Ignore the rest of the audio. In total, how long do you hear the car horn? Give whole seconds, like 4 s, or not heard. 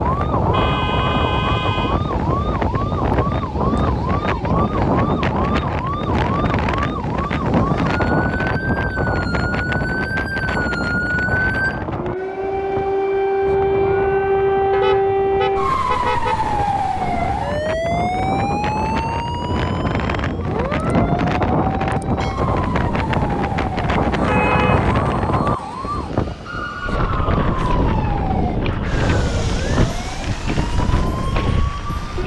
4 s.